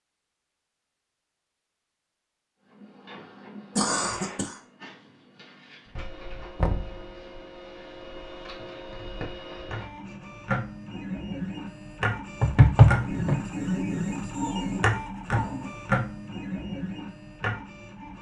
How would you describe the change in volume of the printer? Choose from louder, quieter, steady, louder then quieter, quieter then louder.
louder.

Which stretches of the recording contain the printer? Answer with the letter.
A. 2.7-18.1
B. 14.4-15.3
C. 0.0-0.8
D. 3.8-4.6
A.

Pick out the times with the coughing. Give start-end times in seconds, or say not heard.
3.8-4.6.